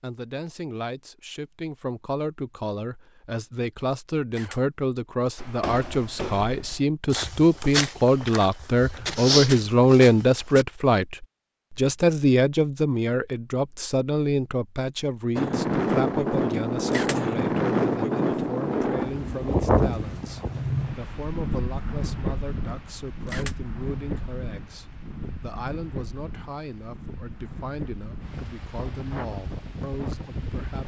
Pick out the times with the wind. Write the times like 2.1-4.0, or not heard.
15.3-30.8.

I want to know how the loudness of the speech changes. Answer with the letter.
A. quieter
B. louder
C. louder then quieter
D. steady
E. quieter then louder
C.